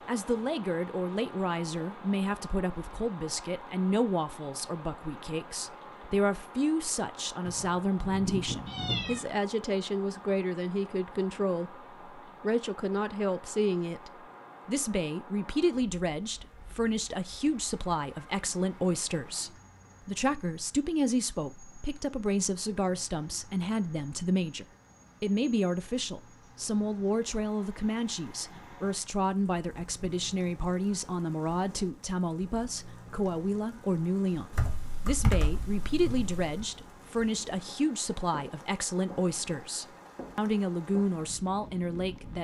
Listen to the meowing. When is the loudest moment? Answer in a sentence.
The volume of the meowing peaks at 9 seconds.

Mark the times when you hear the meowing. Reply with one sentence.
The meowing can be heard from 7.4 to 9.2 s.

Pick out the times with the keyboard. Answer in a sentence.
The keyboard can be heard from 34.5 to 36.6 s.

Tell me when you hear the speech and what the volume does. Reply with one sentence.
The speech can be heard from 0.1 to 42.3 s, at a steady volume.